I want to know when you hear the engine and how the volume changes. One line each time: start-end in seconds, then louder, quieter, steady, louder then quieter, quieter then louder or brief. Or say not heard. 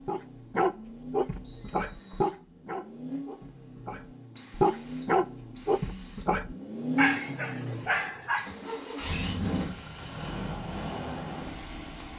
0.0-12.1 louder.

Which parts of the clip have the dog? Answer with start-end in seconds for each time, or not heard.
0.1-8.5.